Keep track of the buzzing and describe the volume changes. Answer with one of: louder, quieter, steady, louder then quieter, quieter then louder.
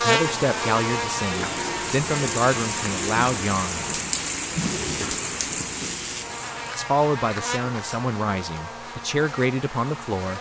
quieter.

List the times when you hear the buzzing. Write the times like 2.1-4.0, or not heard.
0.0-10.3.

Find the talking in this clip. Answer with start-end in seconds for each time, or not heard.
0.0-3.8, 6.8-10.3.